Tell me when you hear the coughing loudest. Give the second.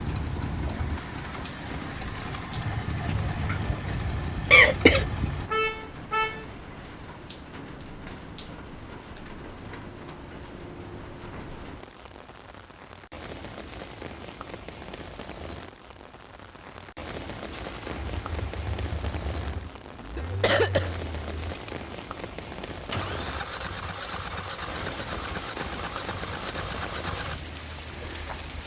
5 s.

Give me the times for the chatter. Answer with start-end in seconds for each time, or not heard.
not heard.